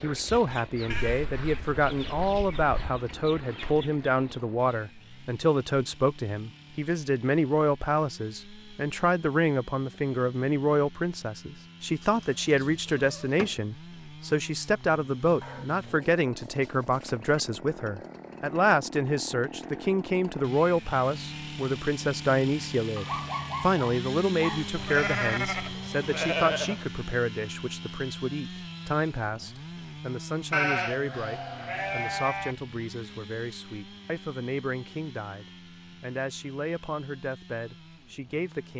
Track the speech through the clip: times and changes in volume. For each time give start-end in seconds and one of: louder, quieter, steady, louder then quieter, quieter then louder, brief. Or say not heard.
0.0-38.7 quieter.